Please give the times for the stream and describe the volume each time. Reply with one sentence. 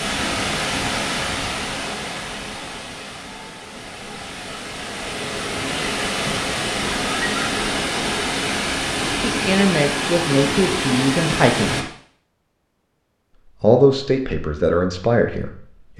You can hear the stream from 0.0 to 11.8 s, getting quieter then louder.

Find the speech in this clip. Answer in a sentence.
The speech can be heard from 9.2 to 11.8 s and from 13.6 to 15.9 s.